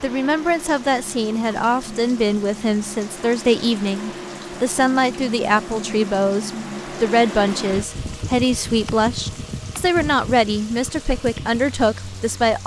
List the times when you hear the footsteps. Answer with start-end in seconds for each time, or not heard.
not heard.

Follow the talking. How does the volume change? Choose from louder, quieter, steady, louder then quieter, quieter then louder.
steady.